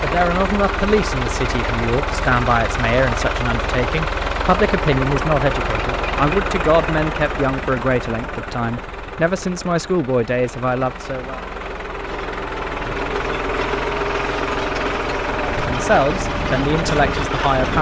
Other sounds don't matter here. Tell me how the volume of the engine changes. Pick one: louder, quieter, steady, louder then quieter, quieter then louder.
quieter then louder.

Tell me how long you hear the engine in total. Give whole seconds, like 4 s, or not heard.
18 s.